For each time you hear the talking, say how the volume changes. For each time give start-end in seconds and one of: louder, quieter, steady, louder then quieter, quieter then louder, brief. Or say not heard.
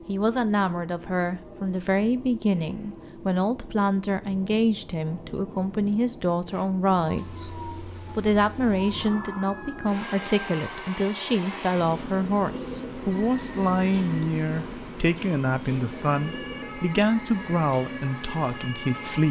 0.1-7.5 steady
8.2-19.2 steady.